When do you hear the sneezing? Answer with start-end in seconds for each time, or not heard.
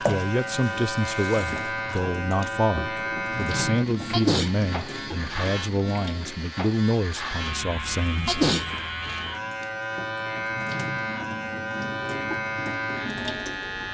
4.1-5.0, 8.2-9.2.